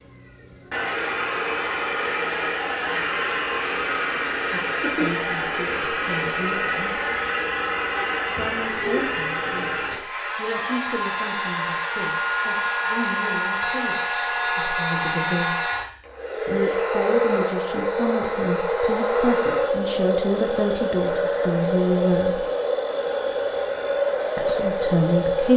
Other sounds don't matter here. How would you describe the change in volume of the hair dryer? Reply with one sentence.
The volume of the hair dryer stays about the same.